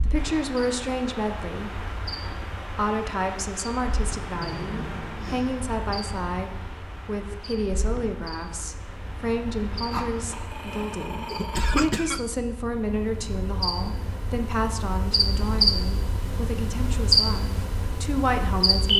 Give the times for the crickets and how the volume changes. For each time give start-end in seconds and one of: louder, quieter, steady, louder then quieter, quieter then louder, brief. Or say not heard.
0.0-18.9 louder.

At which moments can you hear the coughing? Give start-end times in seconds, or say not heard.
11.2-12.2.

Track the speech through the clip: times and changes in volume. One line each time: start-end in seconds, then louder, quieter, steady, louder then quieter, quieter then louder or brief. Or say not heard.
0.1-1.7 brief
2.6-18.9 steady.